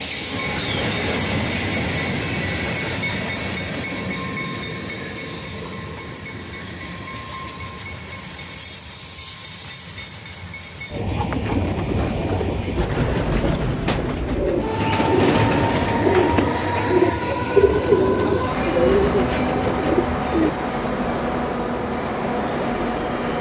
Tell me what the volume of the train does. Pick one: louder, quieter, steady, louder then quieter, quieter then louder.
quieter then louder.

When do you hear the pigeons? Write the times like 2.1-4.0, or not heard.
11.3-20.5.